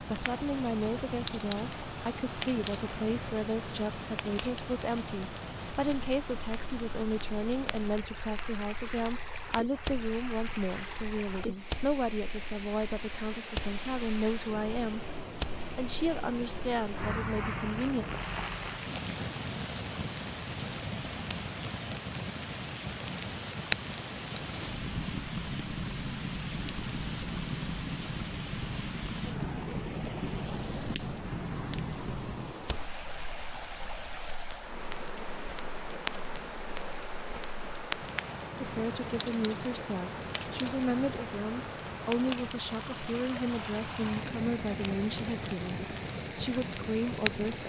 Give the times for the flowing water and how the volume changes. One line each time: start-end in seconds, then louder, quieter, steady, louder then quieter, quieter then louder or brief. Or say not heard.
0.0-47.6 steady.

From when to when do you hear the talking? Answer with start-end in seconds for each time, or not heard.
0.0-18.1, 38.5-47.6.